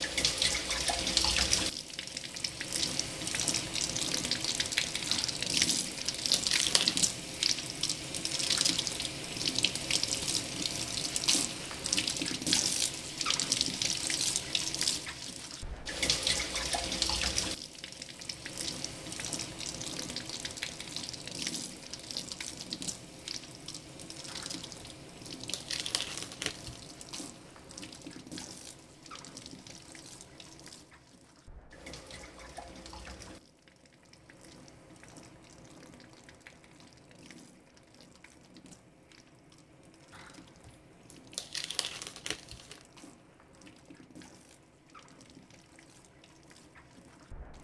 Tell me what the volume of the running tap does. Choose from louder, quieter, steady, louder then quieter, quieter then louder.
quieter.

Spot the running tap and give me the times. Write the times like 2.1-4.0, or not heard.
0.0-47.5.